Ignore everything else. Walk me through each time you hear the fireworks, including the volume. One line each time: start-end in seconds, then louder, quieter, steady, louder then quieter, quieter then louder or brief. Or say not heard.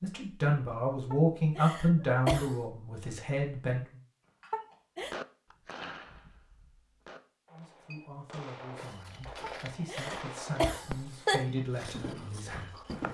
5.0-11.3 quieter then louder
11.9-13.0 brief.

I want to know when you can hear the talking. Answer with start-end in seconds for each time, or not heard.
0.0-4.0, 7.5-12.8.